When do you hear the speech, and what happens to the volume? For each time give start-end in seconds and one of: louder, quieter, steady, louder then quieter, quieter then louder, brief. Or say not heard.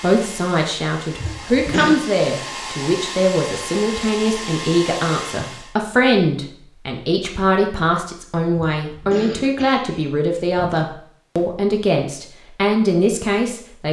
0.0-13.8 steady.